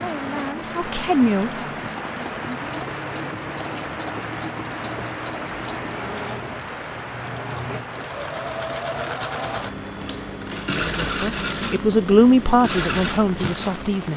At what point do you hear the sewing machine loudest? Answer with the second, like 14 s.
11 s.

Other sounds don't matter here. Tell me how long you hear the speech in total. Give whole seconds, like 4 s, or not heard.
5 s.